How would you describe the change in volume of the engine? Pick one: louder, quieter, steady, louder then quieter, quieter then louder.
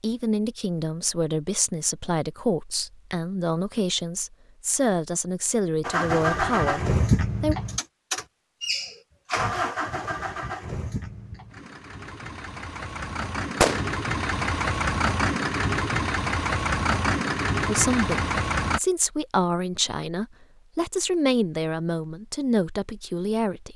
quieter then louder.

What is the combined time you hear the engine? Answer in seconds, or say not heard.
13 s.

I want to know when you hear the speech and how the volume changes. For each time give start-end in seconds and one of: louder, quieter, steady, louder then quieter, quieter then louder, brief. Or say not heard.
0.0-7.5 steady
17.6-23.7 steady.